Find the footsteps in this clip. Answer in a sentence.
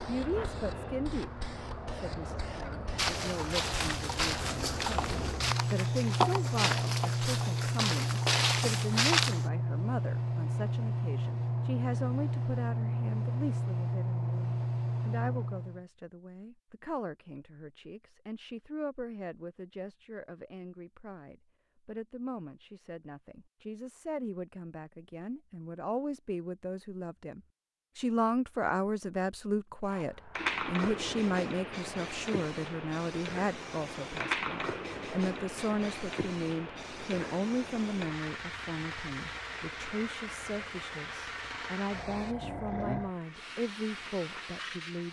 You can hear the footsteps from 3.0 to 9.5 s.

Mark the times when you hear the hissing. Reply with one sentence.
The hissing can be heard from 0.0 to 15.8 s and from 29.9 to 45.0 s.